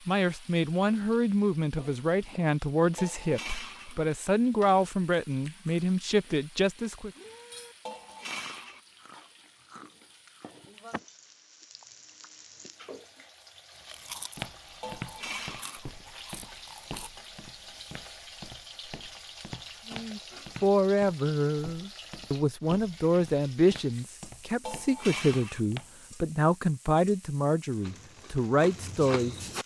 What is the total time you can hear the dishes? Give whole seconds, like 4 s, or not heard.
4 s.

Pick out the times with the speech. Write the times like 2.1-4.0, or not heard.
0.1-7.1, 19.9-29.4.